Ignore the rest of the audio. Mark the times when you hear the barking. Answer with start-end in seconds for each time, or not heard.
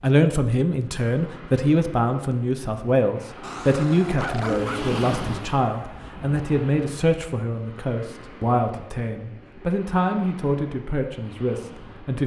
3.4-5.1.